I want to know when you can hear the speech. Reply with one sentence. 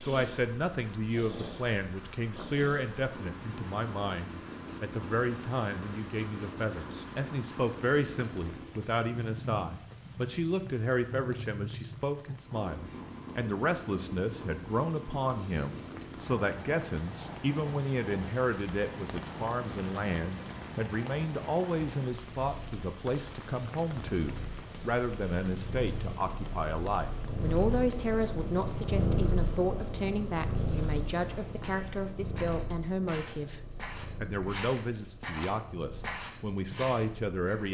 You can hear the speech from 0.0 to 33.6 s and from 34.2 to 37.6 s.